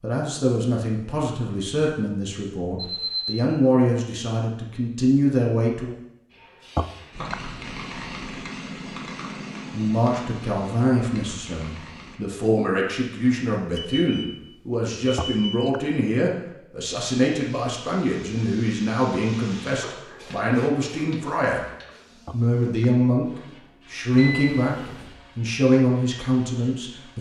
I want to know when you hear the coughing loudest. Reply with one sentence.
The loudest moment of the coughing is at 7 seconds.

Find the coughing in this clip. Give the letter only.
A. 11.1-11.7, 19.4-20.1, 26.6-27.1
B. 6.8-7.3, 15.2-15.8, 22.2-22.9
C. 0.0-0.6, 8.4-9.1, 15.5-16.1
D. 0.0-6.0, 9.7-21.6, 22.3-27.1
B.